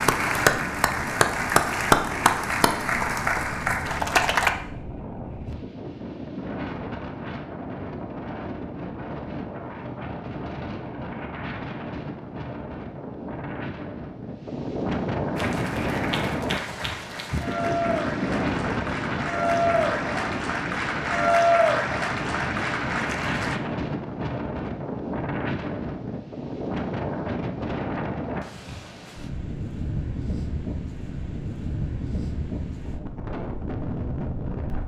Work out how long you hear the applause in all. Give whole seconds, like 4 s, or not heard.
13 s.